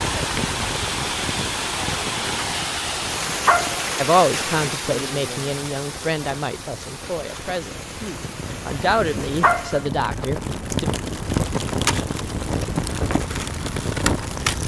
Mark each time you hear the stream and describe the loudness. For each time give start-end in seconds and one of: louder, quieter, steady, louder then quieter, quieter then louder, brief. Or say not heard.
0.0-9.9 quieter.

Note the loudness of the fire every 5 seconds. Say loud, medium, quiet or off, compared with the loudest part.
medium, medium, loud.